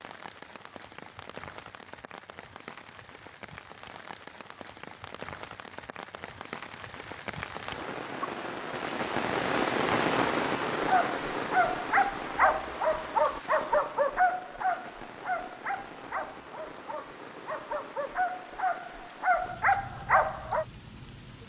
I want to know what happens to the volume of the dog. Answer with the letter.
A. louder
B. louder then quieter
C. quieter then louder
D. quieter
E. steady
C.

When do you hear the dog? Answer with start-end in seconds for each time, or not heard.
10.8-20.6.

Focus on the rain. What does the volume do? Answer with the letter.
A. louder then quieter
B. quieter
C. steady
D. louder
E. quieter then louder
A.